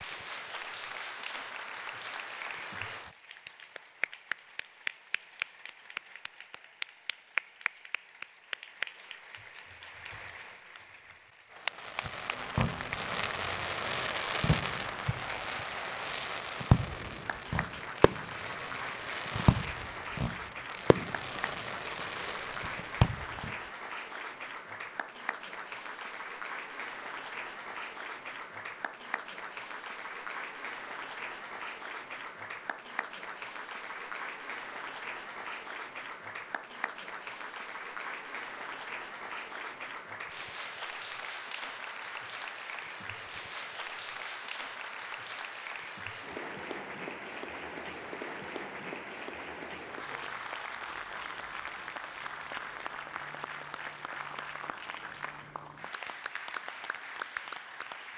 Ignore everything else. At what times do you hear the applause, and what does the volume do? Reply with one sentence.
The applause can be heard from 0.0 to 58.1 s, at a steady volume.